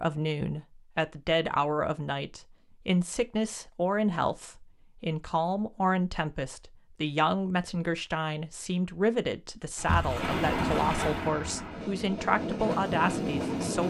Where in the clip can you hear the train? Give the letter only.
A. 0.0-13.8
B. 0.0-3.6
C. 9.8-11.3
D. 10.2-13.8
D.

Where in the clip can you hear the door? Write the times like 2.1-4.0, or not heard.
9.8-11.3.